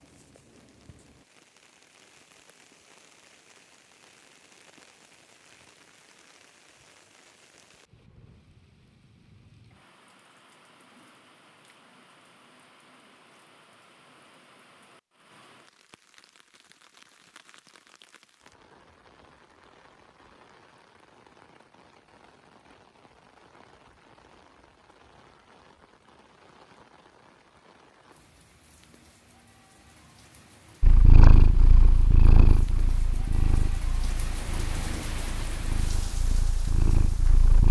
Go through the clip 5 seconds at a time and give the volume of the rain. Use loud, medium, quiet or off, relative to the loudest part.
quiet, quiet, quiet, quiet, quiet, quiet, loud, loud.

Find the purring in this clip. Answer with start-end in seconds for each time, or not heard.
30.8-37.6.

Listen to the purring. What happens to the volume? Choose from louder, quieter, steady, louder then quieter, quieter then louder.
quieter then louder.